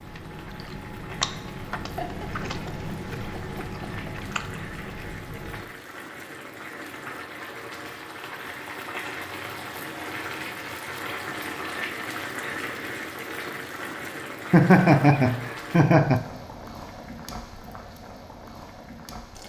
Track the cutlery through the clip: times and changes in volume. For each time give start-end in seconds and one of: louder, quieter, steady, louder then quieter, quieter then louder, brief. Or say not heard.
not heard.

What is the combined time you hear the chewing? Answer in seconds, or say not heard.
6 s.